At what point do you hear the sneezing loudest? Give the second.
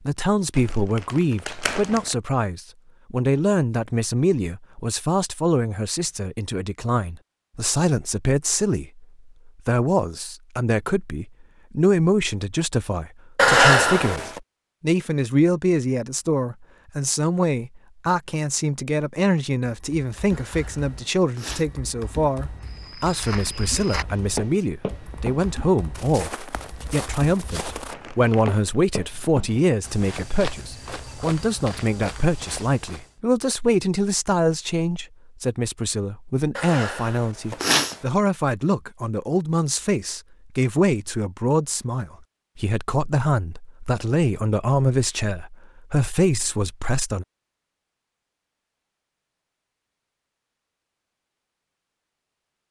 14 s.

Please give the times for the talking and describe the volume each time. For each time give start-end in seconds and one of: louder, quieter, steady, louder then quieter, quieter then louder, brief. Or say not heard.
0.1-47.2 steady.